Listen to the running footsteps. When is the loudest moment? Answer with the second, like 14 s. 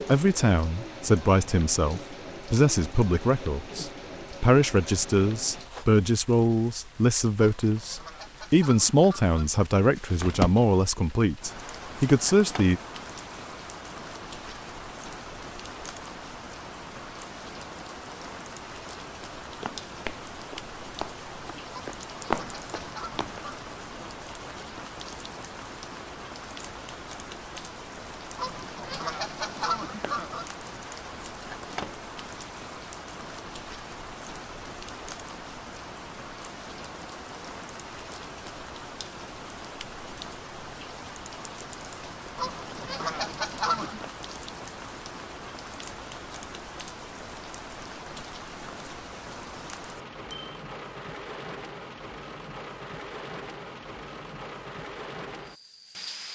22 s.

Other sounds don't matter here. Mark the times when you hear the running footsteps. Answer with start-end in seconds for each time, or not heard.
19.6-23.4.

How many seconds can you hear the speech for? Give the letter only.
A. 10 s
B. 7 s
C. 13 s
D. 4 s
C.